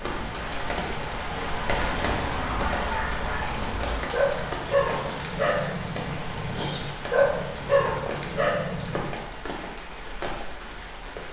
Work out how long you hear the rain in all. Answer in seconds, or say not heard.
11 s.